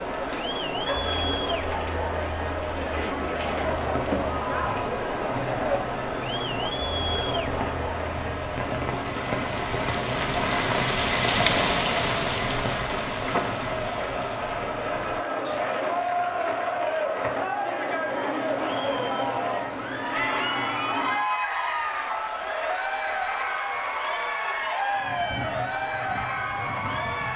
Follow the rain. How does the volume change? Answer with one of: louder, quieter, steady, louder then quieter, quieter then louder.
louder then quieter.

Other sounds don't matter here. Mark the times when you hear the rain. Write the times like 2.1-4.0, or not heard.
0.0-27.3.